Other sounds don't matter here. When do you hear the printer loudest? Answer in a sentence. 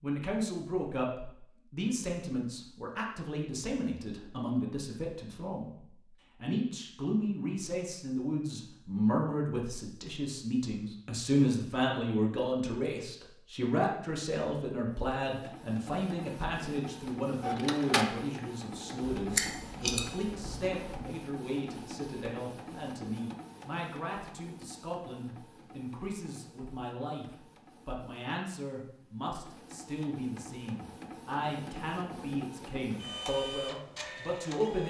The volume of the printer peaks at 18 seconds.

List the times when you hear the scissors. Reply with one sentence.
The scissors can be heard from 19.1 to 21.0 s.